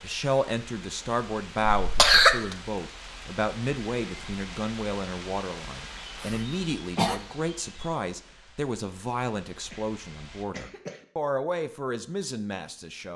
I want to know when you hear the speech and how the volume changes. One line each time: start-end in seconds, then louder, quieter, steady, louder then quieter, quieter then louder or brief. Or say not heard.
0.0-13.1 steady.